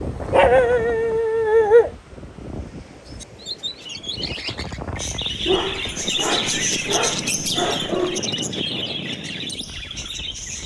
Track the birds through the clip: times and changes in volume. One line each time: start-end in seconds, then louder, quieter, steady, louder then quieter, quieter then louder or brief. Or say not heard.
3.0-10.6 louder then quieter.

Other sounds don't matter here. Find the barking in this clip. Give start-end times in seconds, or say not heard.
0.3-1.9, 5.5-8.2.